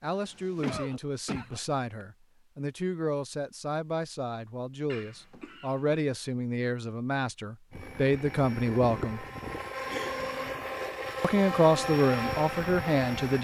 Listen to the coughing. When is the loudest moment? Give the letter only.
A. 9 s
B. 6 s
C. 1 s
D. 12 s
C.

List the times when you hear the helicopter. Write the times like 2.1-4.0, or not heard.
7.7-13.3.